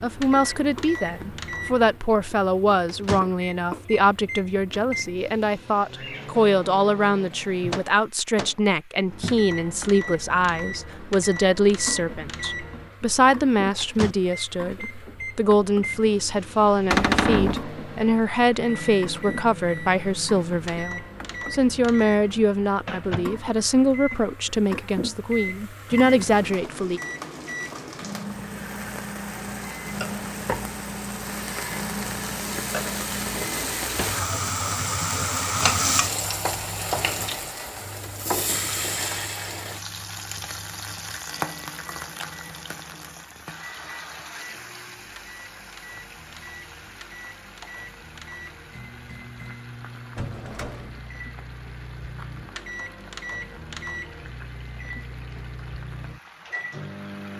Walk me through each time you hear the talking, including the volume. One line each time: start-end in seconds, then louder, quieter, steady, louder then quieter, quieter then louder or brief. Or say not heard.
0.0-27.0 steady.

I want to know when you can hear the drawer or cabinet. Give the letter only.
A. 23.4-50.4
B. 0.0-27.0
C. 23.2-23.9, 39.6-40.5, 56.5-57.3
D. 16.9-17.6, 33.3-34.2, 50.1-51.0
D.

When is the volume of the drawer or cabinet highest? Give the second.
17 s.